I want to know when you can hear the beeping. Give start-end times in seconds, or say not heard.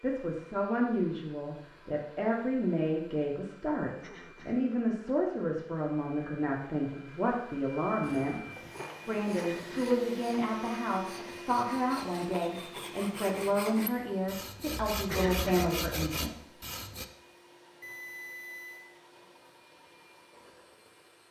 17.8-18.9.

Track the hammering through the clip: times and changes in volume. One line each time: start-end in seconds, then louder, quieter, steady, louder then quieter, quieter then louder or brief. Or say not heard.
not heard.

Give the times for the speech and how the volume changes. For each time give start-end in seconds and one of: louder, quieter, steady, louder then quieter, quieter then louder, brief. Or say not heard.
0.0-16.5 steady.